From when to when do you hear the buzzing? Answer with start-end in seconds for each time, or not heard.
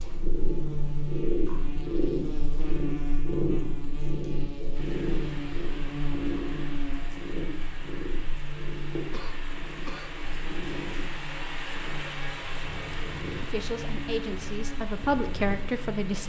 0.0-16.2.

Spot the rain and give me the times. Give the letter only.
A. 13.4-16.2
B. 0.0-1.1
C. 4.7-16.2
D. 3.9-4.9
C.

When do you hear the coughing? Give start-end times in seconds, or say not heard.
9.1-10.2.